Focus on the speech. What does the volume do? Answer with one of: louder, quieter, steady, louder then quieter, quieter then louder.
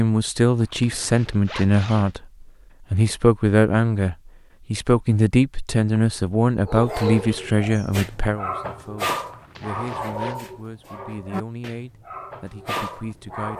quieter.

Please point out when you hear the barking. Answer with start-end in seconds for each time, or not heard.
6.7-13.5.